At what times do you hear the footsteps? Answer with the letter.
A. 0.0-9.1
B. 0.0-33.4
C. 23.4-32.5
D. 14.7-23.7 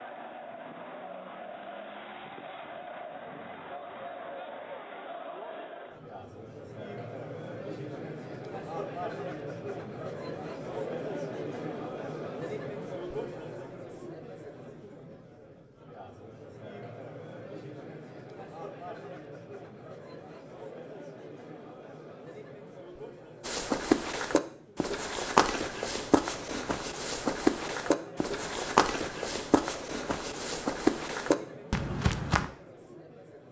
C.